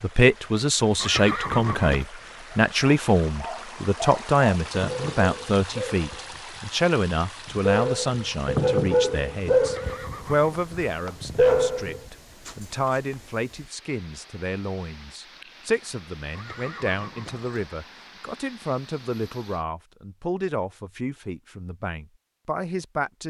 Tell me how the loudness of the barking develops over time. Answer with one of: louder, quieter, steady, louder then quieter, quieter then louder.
louder.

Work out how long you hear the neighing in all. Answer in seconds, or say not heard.
4 s.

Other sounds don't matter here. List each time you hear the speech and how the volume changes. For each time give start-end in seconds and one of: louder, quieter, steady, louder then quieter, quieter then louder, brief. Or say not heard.
0.0-23.2 quieter.